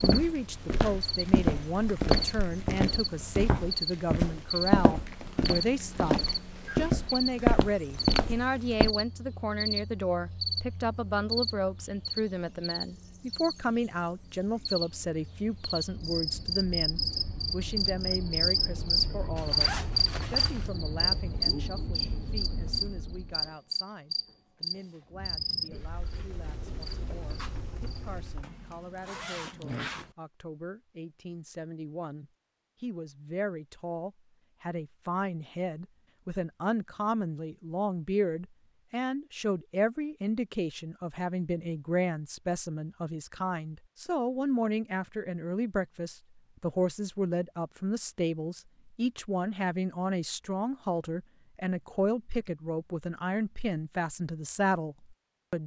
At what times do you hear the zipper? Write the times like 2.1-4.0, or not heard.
19.4-20.7, 28.4-30.1.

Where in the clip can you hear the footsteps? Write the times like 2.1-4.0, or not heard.
0.0-8.9.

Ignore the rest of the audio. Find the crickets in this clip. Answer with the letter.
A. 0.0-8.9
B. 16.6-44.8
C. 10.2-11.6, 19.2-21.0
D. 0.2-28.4
D.